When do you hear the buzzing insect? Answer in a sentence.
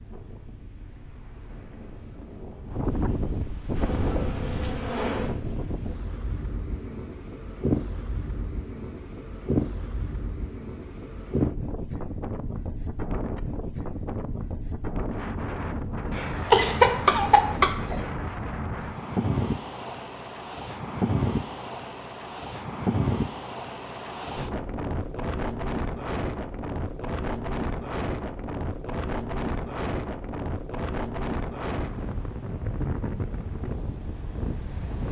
You can hear the buzzing insect from 3.7 to 5.3 s.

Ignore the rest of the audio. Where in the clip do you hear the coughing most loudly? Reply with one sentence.
The volume of the coughing peaks at 17 seconds.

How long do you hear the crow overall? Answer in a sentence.
The crow can't be heard in this clip.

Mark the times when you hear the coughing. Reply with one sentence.
The coughing can be heard from 16.1 to 18.0 s.